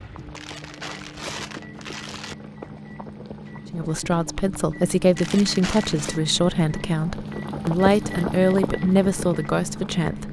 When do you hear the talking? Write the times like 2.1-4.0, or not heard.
3.7-10.2.